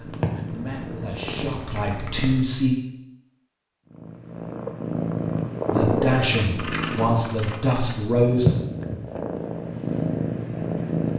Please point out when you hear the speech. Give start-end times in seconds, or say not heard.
0.0-2.8, 5.7-8.5.